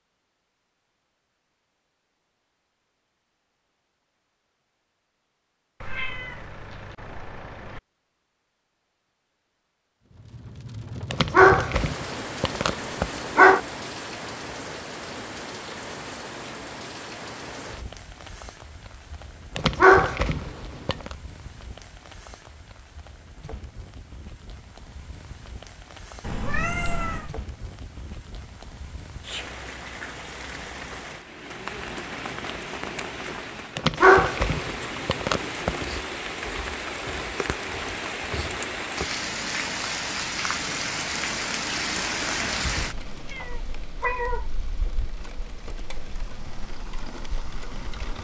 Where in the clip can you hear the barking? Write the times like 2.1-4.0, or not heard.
11.1-13.6, 19.6-21.1, 33.8-35.9.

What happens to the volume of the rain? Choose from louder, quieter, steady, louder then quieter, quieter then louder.
quieter then louder.